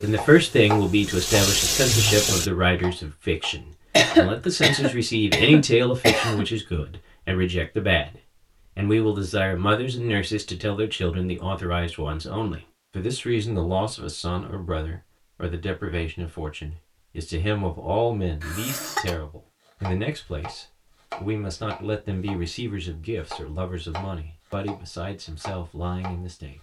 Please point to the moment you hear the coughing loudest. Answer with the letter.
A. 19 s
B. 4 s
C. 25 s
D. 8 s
B.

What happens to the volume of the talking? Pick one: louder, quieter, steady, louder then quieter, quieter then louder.
quieter.